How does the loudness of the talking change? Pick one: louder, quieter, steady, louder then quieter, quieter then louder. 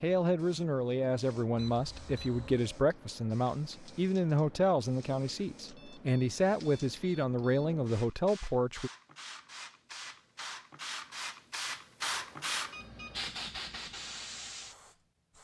steady.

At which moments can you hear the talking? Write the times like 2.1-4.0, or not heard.
0.0-8.9.